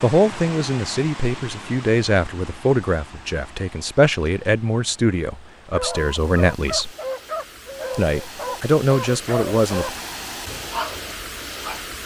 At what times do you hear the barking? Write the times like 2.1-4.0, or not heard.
5.7-11.9.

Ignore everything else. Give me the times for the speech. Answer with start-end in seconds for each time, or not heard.
0.0-6.9, 7.9-9.9.